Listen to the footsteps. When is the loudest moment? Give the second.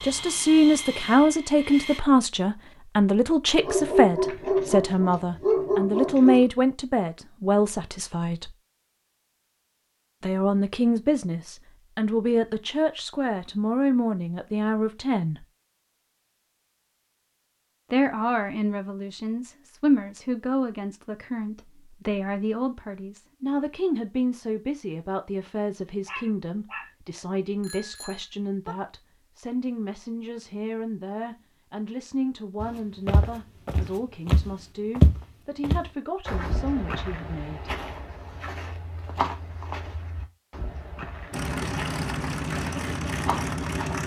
35 s.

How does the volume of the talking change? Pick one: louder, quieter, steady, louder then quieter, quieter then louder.
quieter.